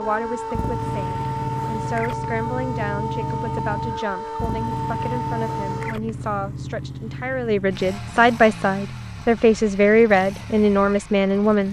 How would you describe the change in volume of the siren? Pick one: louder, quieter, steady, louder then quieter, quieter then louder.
steady.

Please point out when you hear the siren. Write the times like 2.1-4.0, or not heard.
0.0-6.0.